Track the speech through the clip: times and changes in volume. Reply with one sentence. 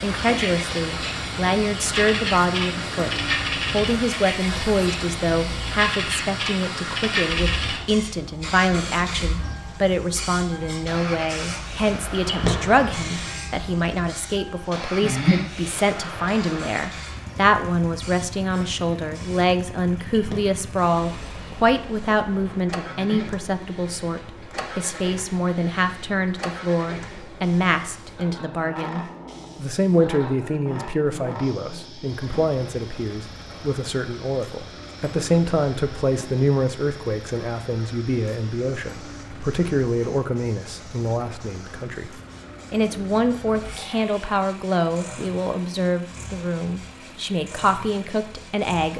You can hear the speech from 0.0 to 48.9 s, at a steady volume.